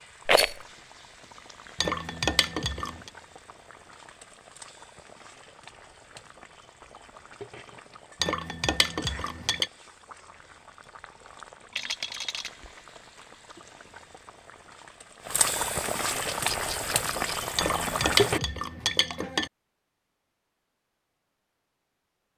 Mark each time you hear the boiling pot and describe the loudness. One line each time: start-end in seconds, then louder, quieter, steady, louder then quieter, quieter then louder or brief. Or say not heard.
0.0-18.4 louder.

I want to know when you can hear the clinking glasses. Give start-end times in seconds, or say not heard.
1.8-3.1, 8.2-9.7, 17.6-19.5.